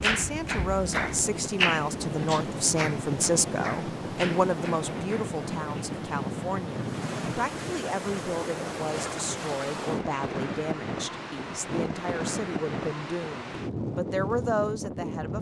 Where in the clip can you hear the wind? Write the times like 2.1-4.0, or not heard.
0.0-15.3.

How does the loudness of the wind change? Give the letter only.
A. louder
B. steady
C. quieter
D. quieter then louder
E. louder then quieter
B.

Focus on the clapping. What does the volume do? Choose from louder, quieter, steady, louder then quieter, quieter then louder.
louder then quieter.